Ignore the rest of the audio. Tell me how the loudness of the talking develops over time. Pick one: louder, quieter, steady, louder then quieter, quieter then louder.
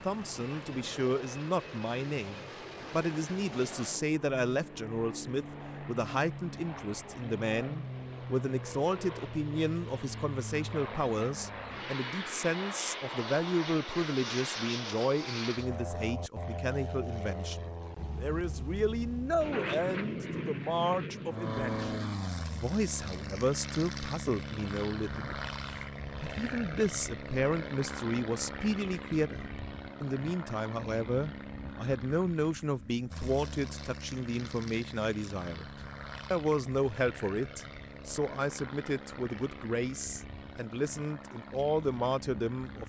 steady.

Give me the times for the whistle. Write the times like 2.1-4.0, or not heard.
not heard.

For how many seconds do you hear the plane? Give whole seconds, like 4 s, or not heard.
43 s.